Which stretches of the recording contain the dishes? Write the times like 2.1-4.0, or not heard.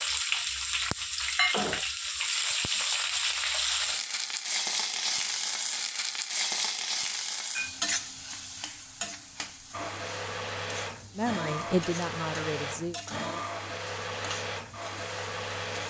not heard.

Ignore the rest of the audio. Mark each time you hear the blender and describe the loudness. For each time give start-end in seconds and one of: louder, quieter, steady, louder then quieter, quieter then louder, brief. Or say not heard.
9.7-15.8 steady.